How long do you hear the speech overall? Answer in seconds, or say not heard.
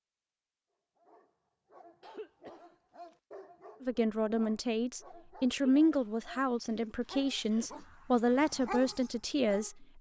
6 s.